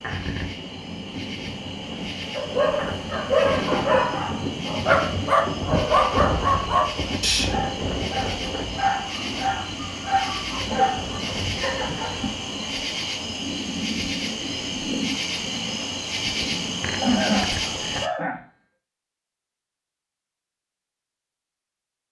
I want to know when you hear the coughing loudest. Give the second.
17 s.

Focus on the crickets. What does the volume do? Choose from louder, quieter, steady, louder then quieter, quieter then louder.
louder.